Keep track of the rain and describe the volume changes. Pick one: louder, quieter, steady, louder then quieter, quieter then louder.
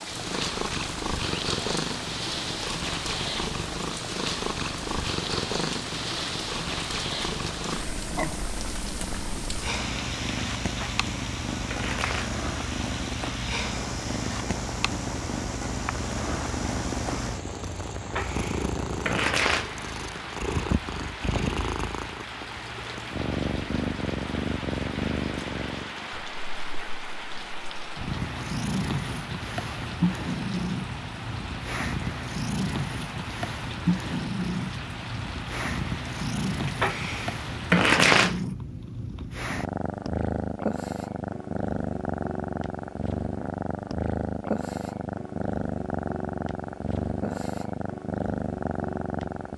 steady.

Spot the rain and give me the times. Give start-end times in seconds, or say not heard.
0.0-37.9.